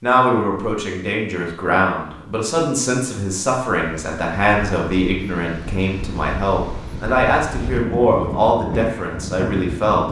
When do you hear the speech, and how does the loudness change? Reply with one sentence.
You can hear the speech from 0.0 to 10.0 s, at a steady volume.